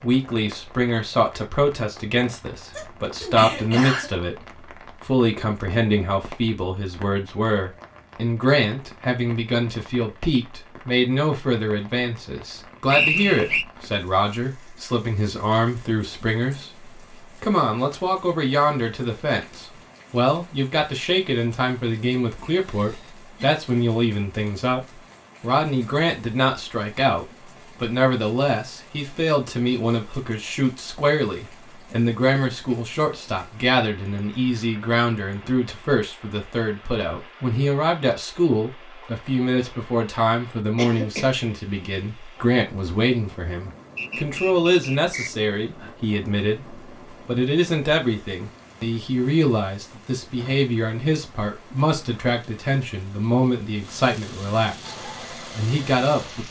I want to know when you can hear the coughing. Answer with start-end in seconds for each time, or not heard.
2.7-4.1, 22.4-23.6, 40.8-41.4.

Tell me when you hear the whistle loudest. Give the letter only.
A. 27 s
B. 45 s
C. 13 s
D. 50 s
C.